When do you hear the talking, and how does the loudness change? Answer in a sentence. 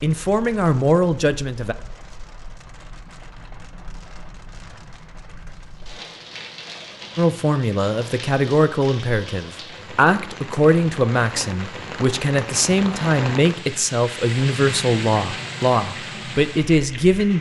The talking can be heard briefly from 0.0 to 1.8 s; and from 7.2 to 17.3 s, at a steady volume.